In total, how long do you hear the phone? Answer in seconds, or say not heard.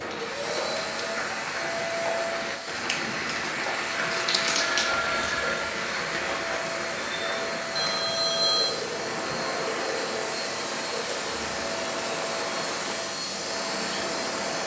2 s.